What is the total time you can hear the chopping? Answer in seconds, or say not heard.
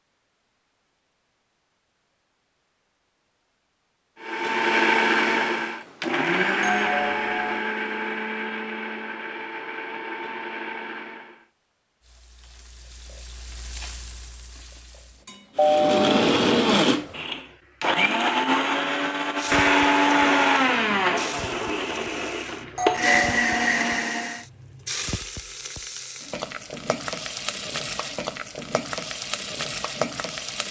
not heard.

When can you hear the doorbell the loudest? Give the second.
16 s.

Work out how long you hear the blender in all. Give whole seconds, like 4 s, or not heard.
16 s.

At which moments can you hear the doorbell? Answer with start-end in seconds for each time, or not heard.
6.6-7.6, 15.6-16.2, 22.8-23.7.